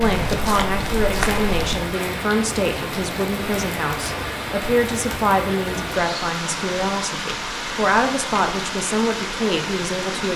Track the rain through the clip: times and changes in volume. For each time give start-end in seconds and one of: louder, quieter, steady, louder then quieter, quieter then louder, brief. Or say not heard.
0.0-10.3 steady.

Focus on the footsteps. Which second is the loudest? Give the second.
1 s.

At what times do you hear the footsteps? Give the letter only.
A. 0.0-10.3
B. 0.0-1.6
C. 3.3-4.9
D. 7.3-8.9
B.